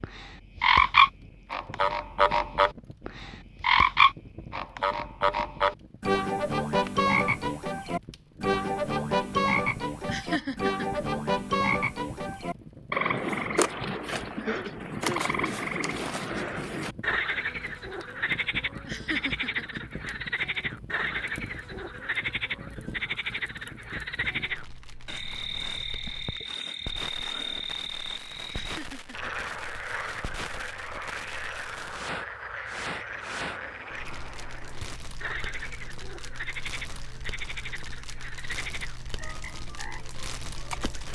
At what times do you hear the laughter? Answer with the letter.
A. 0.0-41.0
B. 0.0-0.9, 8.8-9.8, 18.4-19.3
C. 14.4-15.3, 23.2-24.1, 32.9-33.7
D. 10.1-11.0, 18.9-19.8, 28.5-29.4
D.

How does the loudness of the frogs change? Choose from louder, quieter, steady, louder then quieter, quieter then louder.
quieter.